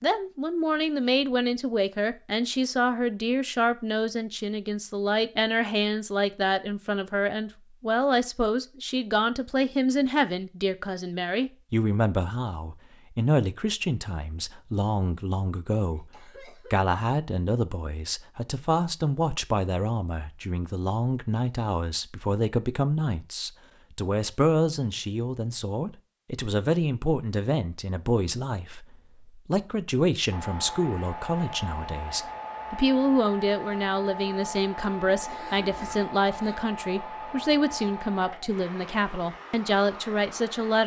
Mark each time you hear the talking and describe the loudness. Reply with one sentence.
You can hear the talking from 0.0 to 40.8 s, at a steady volume.